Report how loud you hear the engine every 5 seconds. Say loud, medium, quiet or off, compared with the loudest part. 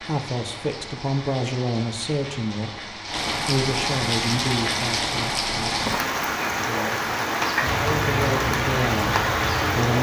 off, loud.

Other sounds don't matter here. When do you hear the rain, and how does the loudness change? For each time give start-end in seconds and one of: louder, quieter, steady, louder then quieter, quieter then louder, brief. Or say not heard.
0.0-9.9 louder.